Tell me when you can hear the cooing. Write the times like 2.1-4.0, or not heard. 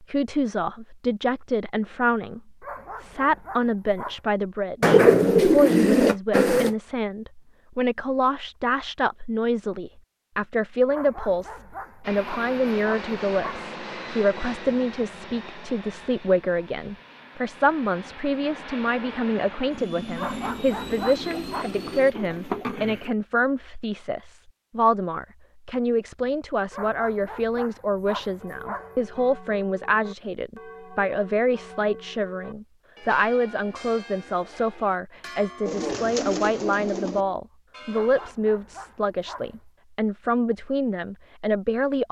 4.8-6.7, 20.4-23.1, 35.6-37.2.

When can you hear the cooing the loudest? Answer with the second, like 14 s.
5 s.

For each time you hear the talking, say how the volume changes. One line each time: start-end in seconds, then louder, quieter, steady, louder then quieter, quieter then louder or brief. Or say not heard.
0.0-42.0 steady.